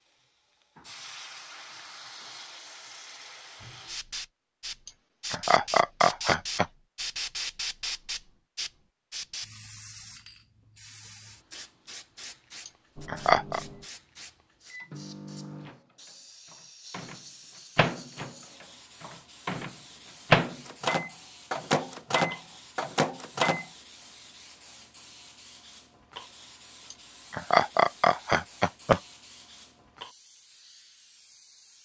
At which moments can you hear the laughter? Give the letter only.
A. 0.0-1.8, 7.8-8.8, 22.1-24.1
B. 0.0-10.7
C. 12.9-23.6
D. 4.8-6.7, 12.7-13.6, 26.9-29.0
D.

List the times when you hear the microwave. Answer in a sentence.
You can hear the microwave from 12.9 to 23.6 s.